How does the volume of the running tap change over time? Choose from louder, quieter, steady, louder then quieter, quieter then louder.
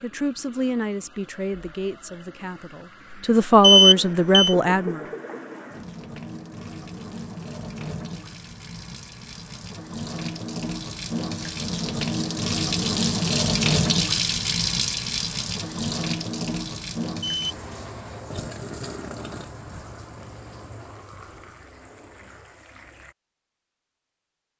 louder then quieter.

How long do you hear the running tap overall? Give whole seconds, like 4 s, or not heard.
23 s.